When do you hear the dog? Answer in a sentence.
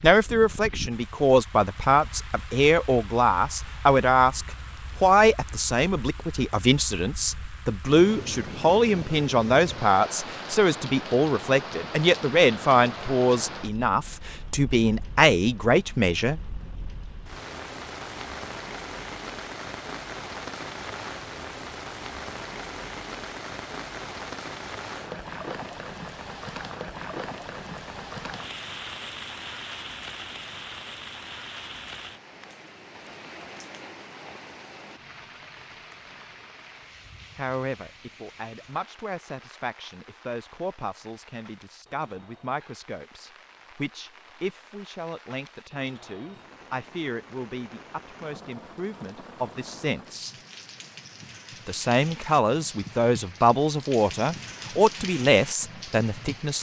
You can't hear the dog here.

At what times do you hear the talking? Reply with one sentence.
You can hear the talking from 0.0 to 16.4 s, from 37.4 to 50.4 s and from 51.6 to 56.5 s.